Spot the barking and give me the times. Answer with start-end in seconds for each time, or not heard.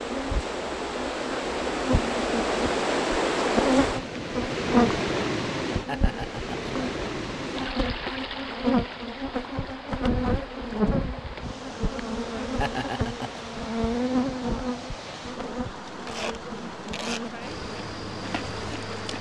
not heard.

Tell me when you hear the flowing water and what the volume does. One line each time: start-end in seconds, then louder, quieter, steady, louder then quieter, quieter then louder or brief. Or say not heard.
0.0-19.1 quieter.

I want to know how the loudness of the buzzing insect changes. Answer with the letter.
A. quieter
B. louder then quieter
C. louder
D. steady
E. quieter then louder
A.